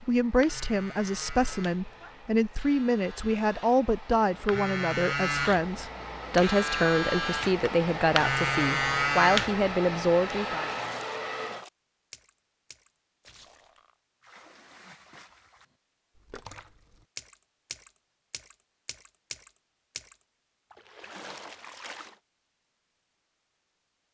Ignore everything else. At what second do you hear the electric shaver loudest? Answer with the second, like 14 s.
9 s.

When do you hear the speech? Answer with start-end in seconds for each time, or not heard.
0.0-10.7.